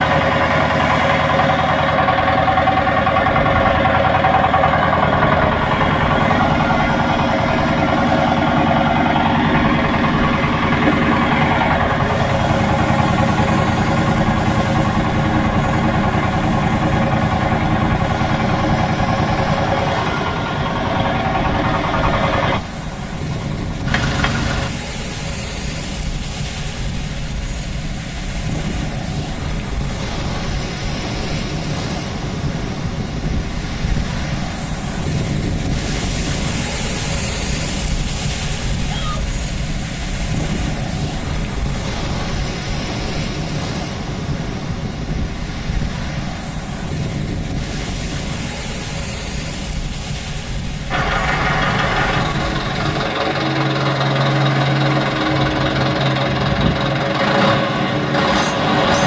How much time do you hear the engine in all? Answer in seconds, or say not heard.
33 s.